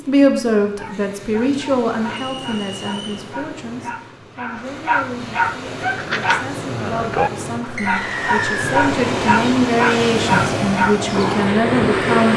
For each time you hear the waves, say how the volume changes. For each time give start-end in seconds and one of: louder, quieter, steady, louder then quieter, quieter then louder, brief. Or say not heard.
0.0-12.3 louder.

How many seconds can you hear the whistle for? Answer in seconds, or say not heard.
2 s.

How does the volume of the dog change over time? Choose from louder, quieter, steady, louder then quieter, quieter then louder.
louder.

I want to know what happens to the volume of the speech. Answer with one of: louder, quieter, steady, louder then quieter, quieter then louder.
quieter then louder.